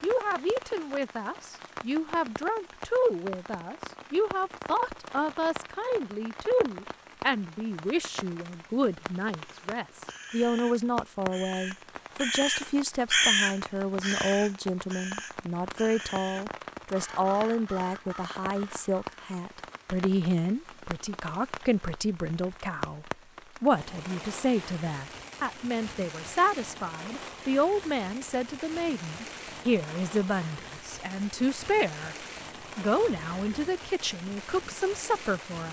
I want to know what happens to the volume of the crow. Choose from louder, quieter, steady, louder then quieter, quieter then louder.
louder then quieter.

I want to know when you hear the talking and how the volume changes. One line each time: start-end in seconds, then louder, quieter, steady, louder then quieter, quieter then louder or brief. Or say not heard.
0.0-32.1 steady
32.8-35.6 brief.